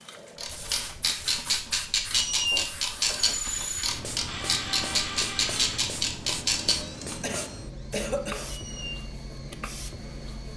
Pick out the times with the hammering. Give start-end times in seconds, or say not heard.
not heard.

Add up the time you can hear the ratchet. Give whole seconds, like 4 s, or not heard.
7 s.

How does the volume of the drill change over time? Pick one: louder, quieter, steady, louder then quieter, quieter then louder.
quieter.